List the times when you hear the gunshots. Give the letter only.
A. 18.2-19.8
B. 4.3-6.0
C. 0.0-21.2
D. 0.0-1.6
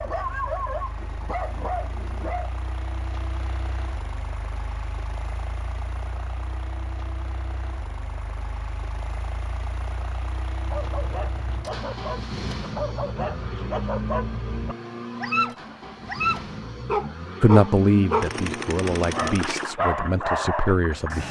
A.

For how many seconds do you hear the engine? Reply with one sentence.
You can hear the engine for 21 seconds altogether.